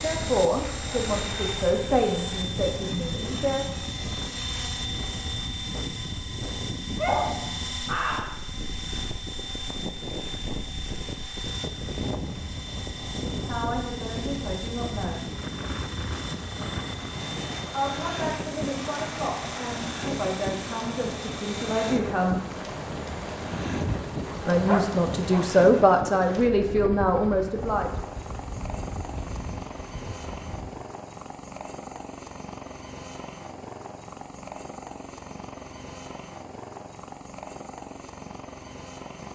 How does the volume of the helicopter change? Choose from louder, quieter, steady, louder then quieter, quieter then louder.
quieter.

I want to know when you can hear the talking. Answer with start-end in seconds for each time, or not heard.
0.0-3.6, 13.4-15.2, 17.7-22.4, 24.4-28.0.